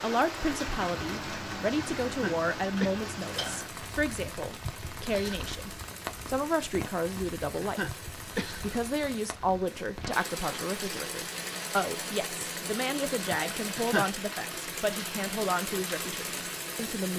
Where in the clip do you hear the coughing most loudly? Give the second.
14 s.